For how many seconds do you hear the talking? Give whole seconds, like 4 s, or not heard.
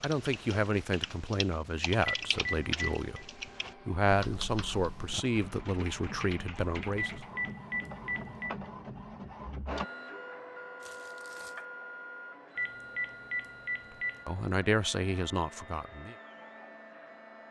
9 s.